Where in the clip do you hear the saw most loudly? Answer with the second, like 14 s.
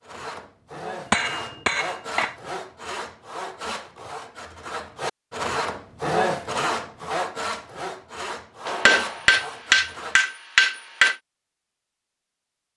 6 s.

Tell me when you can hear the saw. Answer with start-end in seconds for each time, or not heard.
0.0-10.2.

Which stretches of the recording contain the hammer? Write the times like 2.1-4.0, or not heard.
1.1-2.4, 8.7-11.2.